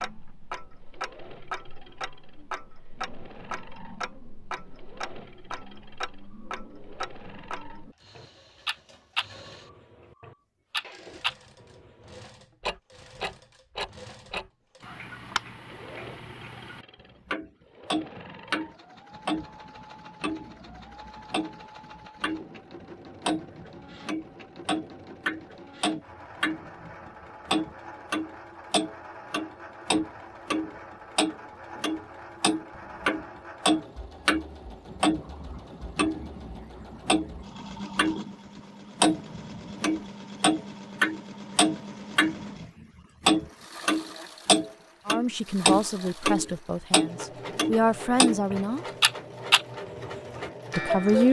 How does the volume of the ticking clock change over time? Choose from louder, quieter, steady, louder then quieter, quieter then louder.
louder.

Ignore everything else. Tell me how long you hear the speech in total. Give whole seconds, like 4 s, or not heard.
4 s.